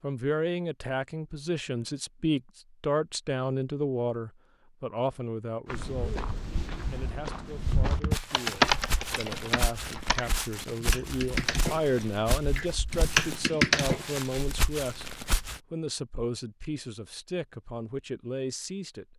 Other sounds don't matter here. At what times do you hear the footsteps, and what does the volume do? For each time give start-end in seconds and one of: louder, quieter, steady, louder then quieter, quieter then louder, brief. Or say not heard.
5.7-15.6 steady.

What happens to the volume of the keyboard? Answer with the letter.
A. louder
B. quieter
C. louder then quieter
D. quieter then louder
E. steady
D.